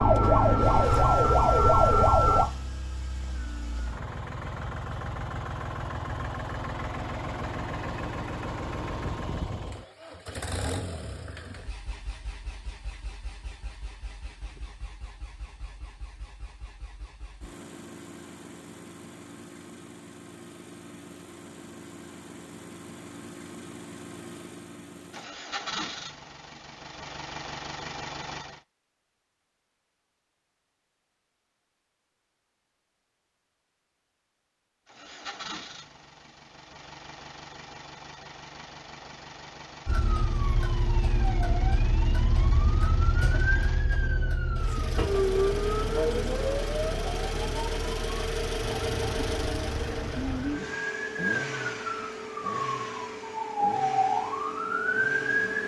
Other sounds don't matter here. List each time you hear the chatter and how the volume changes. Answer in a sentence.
The chatter can't be heard in this clip.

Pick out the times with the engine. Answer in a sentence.
The engine can be heard from 0.1 to 28.6 s and from 34.9 to 55.6 s.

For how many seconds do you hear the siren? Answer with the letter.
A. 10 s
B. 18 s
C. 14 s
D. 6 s
B.